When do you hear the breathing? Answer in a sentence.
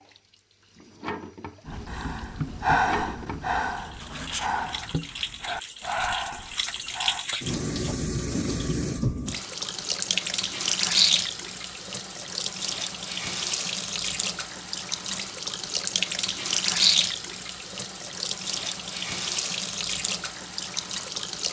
You can hear the breathing from 1.6 to 7.2 s.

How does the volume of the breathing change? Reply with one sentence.
The loudness of the breathing goes down.